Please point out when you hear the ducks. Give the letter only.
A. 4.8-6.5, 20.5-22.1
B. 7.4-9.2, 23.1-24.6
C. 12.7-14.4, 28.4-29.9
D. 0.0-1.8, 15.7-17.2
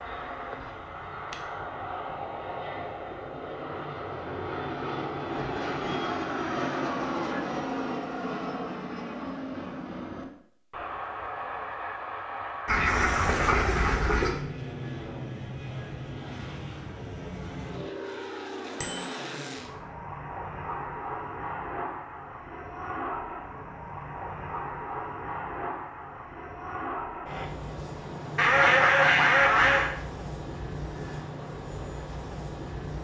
C.